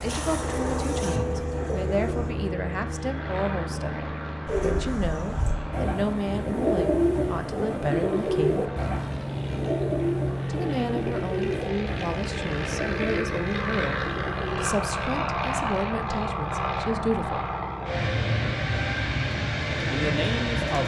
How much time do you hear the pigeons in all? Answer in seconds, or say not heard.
14 s.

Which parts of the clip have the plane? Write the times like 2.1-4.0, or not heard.
0.0-20.8.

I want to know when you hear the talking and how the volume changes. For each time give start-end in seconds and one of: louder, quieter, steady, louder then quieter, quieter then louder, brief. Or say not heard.
0.0-8.7 steady
10.4-17.5 steady
19.9-20.8 brief.